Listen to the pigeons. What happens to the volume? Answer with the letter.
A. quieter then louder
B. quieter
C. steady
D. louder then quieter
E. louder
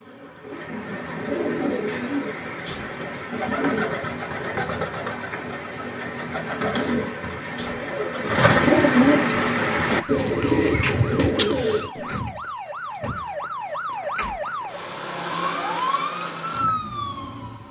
E.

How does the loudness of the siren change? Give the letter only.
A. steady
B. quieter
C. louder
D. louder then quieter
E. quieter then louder
C.